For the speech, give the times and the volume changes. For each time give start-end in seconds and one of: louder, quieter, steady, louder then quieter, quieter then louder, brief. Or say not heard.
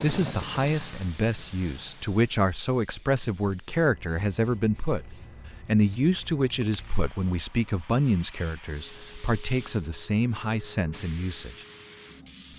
0.0-11.7 steady.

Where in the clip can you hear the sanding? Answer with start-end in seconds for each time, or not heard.
not heard.